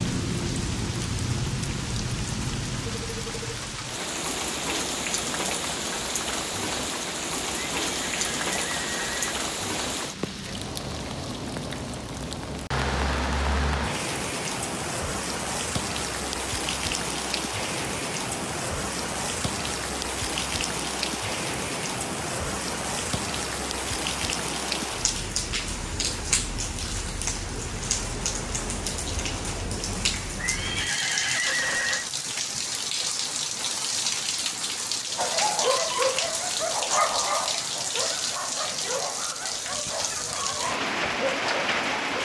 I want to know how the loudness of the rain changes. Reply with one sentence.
The loudness of the rain stays about the same.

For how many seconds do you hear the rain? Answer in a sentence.
The rain can be heard for 42 seconds in total.